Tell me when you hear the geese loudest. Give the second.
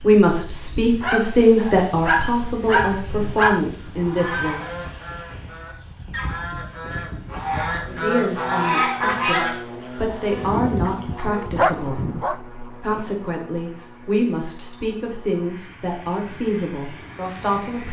9 s.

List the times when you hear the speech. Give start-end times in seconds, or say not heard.
0.0-4.7, 7.8-17.8.